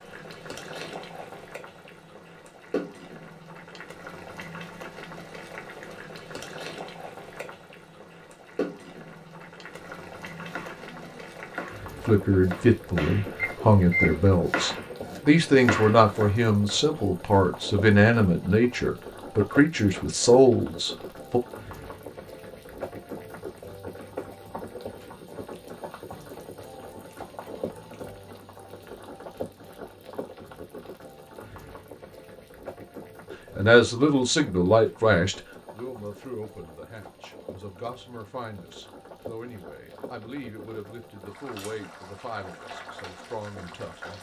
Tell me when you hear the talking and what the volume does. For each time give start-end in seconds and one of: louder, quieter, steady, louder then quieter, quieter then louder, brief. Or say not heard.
12.1-21.4 steady
33.5-44.1 quieter.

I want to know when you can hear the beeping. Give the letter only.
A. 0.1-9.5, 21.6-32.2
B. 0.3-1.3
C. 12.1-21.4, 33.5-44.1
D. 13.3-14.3
D.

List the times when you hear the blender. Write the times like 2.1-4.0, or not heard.
not heard.